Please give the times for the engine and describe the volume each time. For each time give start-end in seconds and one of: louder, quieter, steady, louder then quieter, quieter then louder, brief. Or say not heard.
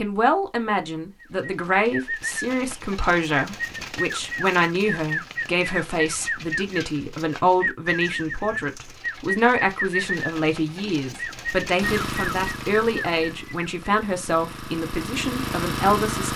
11.8-16.3 quieter then louder.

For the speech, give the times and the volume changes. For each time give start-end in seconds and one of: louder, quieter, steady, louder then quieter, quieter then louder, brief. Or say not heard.
0.0-16.3 steady.